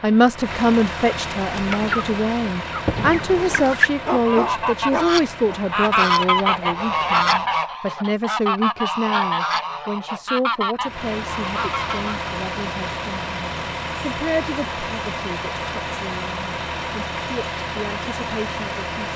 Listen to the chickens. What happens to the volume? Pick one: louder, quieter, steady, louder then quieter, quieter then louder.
louder then quieter.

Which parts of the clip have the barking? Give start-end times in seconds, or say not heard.
3.9-5.6.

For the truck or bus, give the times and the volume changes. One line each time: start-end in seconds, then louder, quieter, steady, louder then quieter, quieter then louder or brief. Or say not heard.
0.0-7.6 quieter
10.8-19.1 steady.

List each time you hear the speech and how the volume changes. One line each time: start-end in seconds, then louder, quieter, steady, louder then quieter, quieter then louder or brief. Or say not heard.
0.0-19.1 quieter.